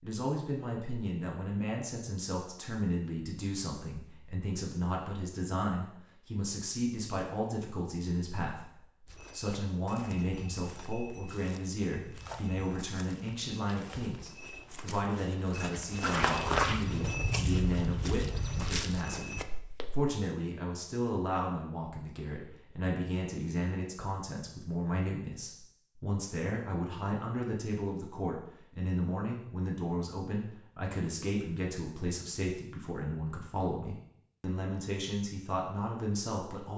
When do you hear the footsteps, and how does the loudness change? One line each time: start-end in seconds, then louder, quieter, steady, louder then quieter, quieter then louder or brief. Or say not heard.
9.1-20.1 louder then quieter.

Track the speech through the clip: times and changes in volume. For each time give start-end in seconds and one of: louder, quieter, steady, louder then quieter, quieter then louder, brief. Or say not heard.
0.0-36.7 steady.